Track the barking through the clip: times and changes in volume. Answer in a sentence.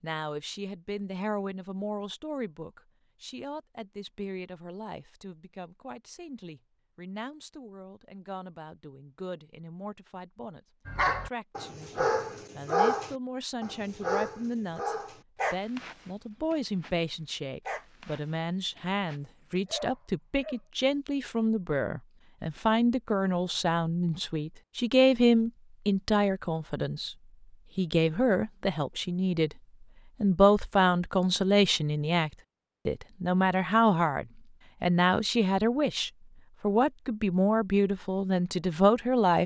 The barking can be heard from 10.8 to 20.6 s, getting quieter.